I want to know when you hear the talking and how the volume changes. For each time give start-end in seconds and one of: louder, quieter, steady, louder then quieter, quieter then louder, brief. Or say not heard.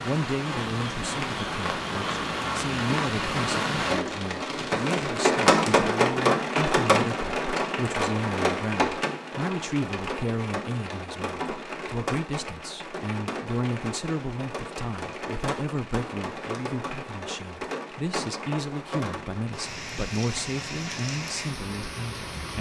0.0-22.5 steady.